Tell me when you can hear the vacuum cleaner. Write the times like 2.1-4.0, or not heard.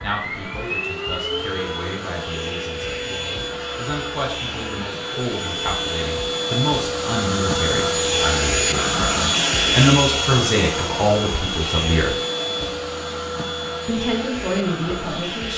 0.0-15.5.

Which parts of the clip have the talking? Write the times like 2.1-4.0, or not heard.
0.0-12.1, 13.8-15.5.